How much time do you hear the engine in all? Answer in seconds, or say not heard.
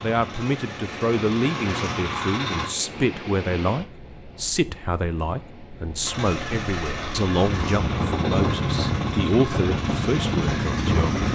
8 s.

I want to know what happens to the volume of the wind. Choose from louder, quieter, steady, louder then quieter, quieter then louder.
quieter then louder.